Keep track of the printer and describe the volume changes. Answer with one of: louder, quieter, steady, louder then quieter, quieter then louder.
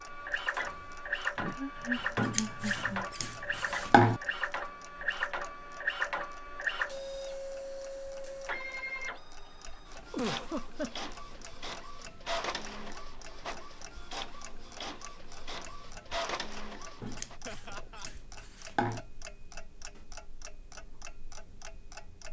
quieter.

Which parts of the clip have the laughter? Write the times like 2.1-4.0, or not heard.
1.4-3.0, 10.1-11.1, 17.4-18.1.